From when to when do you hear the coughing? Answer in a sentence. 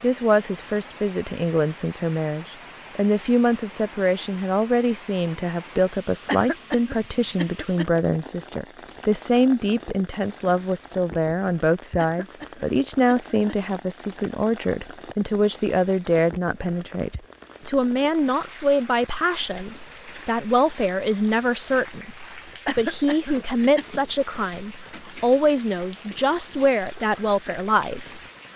You can hear the coughing from 6.2 to 7.8 s, from 11.9 to 13.6 s and from 22.6 to 23.9 s.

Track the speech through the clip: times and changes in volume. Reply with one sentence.
The speech can be heard from 0.0 to 28.2 s, at a steady volume.